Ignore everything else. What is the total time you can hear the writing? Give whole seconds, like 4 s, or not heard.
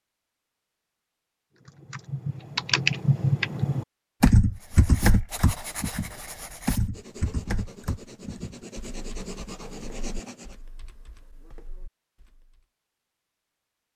6 s.